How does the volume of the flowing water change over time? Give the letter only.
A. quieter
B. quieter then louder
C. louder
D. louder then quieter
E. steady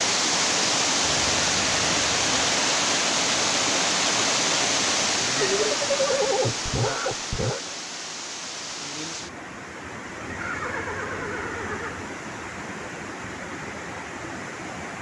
A.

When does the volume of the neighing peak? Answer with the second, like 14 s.
6 s.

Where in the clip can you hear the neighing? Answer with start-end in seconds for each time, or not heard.
1.0-2.4, 5.3-7.7, 10.2-12.1.